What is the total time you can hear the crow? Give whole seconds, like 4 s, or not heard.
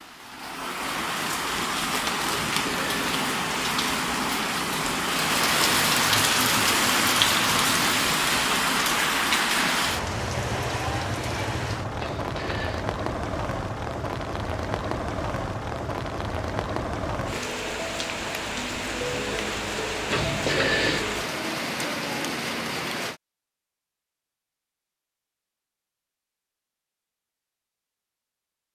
not heard.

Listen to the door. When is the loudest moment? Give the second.
21 s.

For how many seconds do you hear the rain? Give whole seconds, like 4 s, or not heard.
23 s.